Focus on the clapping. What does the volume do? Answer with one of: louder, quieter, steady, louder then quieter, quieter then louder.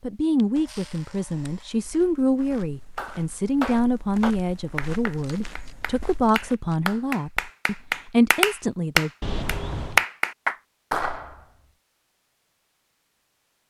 quieter then louder.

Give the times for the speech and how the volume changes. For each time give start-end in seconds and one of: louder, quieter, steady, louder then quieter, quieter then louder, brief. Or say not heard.
0.0-9.1 steady.